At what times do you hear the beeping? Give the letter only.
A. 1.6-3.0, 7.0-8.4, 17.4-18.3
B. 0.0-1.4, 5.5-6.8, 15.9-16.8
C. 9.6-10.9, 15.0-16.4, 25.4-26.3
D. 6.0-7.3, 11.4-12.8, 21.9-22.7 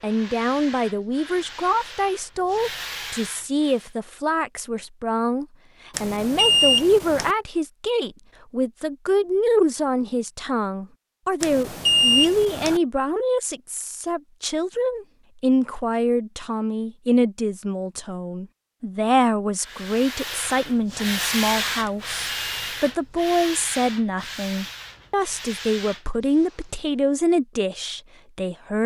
D.